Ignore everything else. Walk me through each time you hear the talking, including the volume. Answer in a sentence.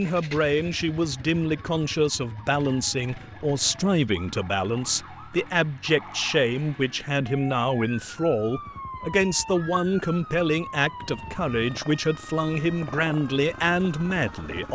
The talking can be heard from 0.0 to 14.7 s, at a steady volume.